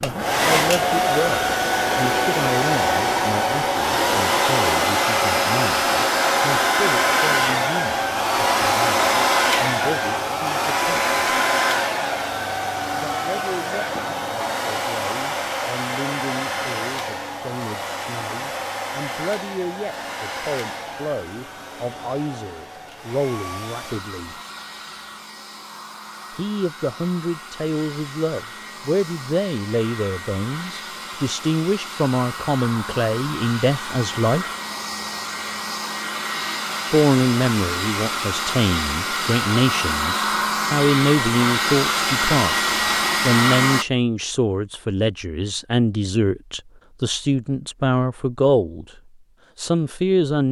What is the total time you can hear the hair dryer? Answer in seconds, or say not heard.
44 s.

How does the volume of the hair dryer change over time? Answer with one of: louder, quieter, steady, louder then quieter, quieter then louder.
quieter then louder.